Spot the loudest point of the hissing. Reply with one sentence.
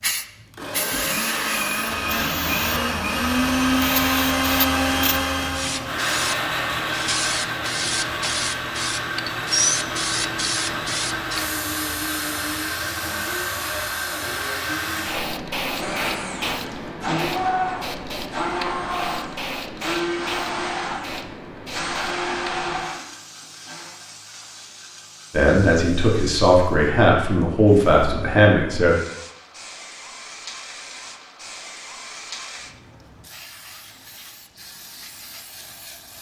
The loudest moment of the hissing is at 10 seconds.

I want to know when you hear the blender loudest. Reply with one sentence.
The loudest moment of the blender is at 4 seconds.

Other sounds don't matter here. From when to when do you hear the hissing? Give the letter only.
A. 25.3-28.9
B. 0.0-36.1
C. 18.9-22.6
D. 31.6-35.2
B.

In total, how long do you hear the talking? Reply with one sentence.
You can hear the talking for 4 seconds altogether.